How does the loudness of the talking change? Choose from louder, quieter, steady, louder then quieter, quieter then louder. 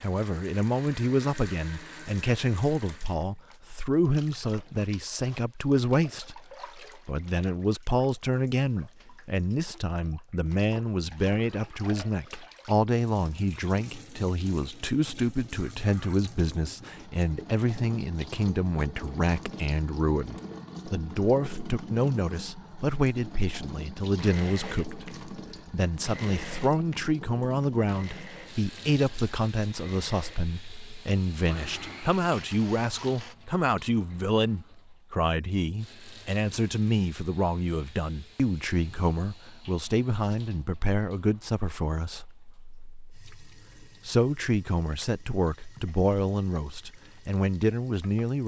steady.